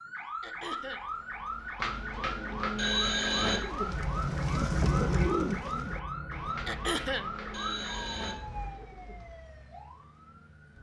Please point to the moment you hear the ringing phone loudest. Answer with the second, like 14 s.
3 s.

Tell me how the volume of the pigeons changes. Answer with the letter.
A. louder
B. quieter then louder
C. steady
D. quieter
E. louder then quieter
E.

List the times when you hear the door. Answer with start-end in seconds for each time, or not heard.
not heard.